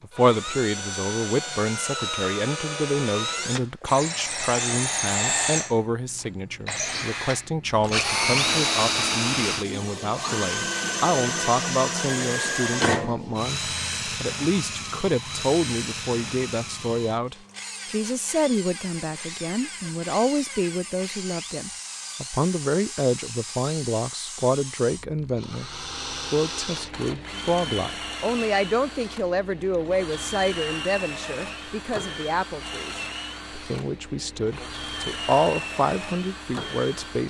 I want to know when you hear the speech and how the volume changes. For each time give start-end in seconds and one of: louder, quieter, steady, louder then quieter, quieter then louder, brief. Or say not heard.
0.0-37.2 steady.